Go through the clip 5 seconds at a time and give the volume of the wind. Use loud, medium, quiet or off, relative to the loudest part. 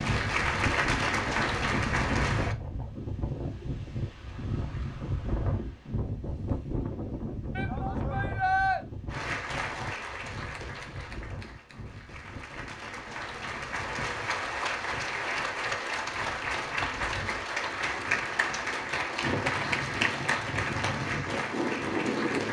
loud, loud, quiet, medium, loud.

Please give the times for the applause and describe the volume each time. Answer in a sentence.
You can hear the applause briefly from 0.0 to 2.5 s; and from 9.1 to 22.4 s, getting louder.